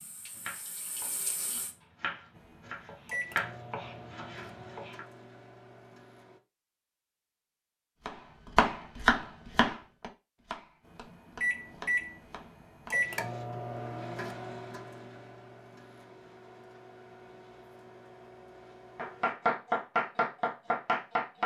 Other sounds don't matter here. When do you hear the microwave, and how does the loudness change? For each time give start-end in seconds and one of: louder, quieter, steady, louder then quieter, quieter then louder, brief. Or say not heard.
2.4-6.4 quieter
10.9-19.4 quieter.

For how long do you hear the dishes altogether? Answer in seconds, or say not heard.
not heard.